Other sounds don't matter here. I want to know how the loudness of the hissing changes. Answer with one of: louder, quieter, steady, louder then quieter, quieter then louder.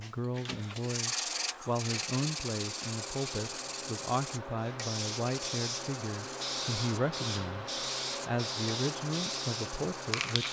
louder.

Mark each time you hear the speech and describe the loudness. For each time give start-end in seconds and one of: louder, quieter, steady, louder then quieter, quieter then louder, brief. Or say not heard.
0.0-10.4 steady.